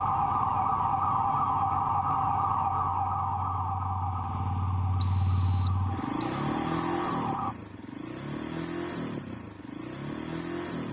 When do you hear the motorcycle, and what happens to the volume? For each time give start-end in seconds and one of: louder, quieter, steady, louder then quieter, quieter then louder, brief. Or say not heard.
0.0-10.8 louder.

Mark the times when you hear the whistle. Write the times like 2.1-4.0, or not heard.
5.0-6.5.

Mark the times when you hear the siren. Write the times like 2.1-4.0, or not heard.
0.0-7.5.